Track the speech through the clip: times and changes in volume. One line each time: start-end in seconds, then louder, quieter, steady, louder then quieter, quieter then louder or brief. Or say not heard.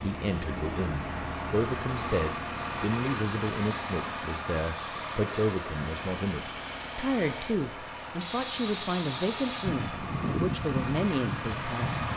0.0-12.1 steady.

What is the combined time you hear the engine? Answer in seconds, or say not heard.
12 s.